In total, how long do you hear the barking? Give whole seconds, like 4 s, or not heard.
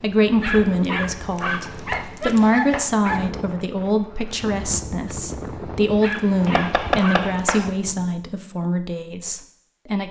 4 s.